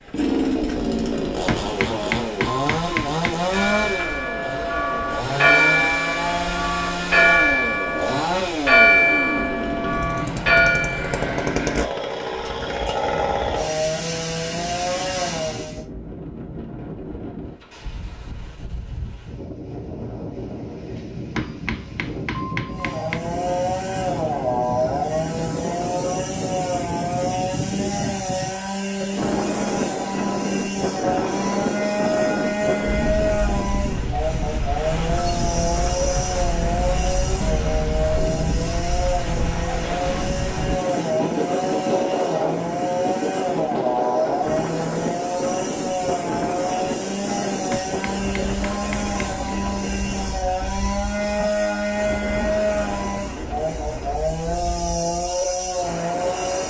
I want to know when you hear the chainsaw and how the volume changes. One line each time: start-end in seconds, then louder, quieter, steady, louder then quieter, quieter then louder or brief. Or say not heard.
0.0-15.8 steady
22.7-56.6 steady.